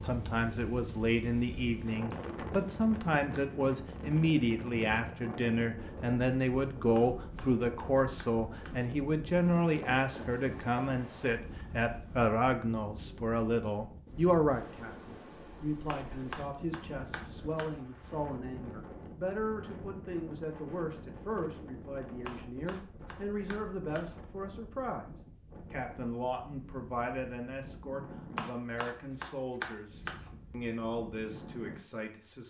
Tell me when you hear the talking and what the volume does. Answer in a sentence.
You can hear the talking from 0.0 to 32.4 s, getting quieter.